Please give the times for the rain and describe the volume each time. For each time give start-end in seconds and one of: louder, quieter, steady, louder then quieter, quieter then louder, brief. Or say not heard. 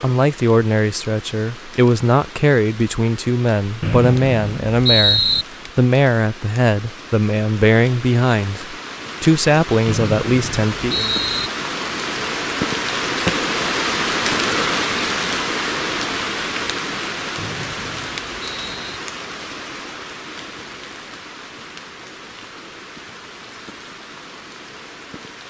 0.0-25.4 louder then quieter.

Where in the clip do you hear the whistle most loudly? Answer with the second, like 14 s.
5 s.